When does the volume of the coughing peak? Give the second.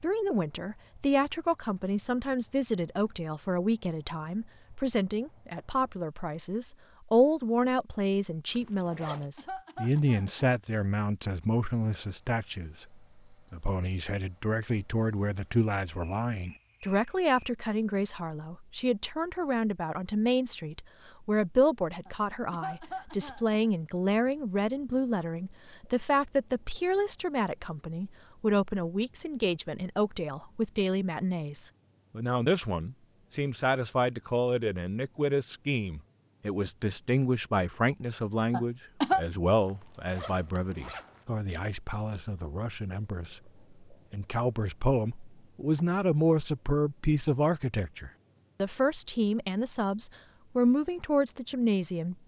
39 s.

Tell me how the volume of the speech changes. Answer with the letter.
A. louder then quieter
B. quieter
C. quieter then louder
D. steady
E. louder
D.